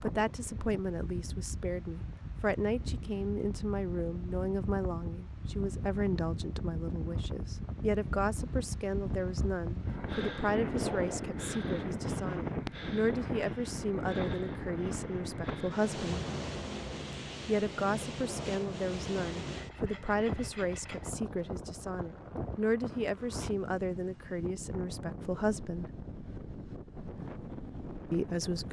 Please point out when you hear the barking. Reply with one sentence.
The barking can't be heard in this clip.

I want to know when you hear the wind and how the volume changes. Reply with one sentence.
You can hear the wind from 0.0 to 28.6 s, getting louder then quieter.